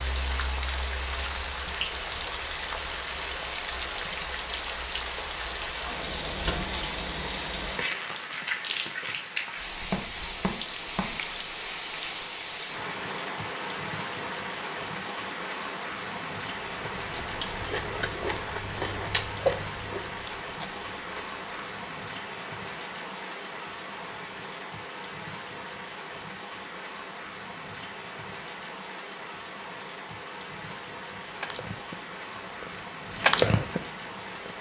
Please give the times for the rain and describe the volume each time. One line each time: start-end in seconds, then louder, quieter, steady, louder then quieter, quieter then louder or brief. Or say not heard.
0.0-34.5 quieter.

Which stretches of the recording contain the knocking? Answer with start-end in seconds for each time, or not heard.
9.9-11.1.